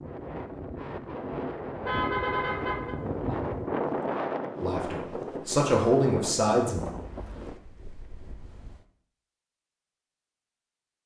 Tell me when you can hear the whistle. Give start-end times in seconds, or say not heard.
not heard.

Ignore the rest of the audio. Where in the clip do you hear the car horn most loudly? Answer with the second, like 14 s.
2 s.